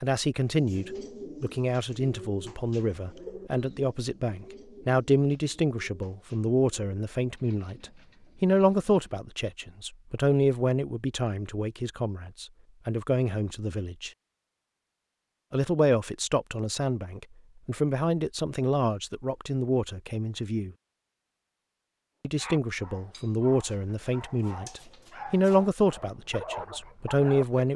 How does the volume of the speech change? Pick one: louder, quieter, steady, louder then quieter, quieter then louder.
steady.